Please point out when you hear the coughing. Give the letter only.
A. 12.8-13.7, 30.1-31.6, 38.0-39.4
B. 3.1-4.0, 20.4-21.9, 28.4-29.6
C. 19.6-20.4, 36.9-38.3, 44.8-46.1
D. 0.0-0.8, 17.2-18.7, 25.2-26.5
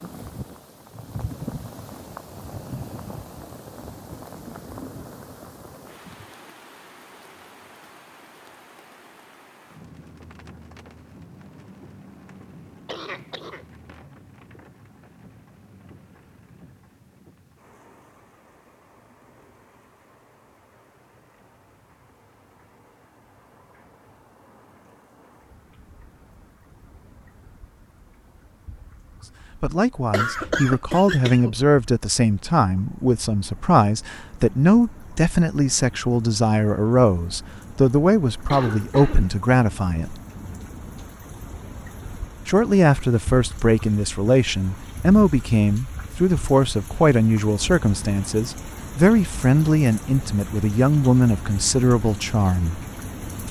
A.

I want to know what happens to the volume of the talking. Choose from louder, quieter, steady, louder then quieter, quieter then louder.
steady.